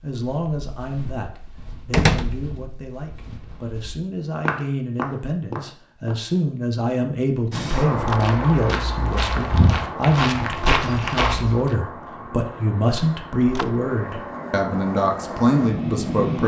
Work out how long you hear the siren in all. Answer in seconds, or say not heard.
not heard.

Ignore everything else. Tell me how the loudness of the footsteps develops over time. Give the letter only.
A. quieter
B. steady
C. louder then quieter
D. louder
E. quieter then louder
D.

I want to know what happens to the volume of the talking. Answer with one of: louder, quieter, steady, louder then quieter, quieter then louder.
louder.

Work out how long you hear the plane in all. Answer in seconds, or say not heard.
9 s.